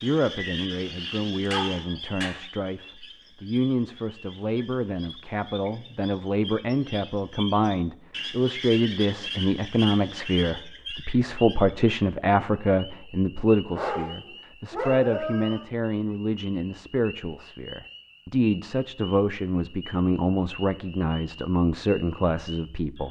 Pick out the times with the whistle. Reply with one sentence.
You can't hear the whistle here.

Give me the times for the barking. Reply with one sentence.
You can hear the barking from 1.4 to 2.4 s and from 13.7 to 15.7 s.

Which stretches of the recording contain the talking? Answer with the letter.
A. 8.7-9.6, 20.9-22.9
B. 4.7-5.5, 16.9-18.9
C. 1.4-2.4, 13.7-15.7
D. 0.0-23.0
D.